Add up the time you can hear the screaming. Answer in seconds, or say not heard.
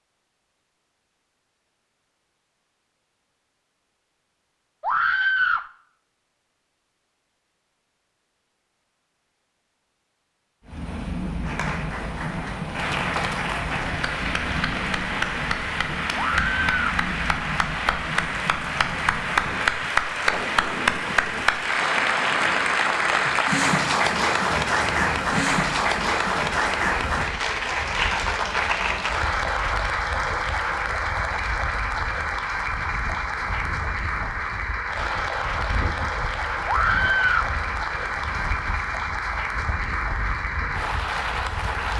2 s.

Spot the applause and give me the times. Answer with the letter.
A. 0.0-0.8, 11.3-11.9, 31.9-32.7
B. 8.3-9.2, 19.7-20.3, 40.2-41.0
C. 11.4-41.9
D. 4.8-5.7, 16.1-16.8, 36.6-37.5
C.